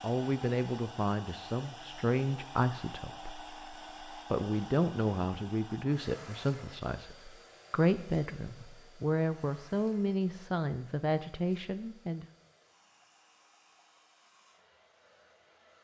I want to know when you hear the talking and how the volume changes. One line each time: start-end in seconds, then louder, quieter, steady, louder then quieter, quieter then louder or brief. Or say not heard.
0.0-12.2 steady.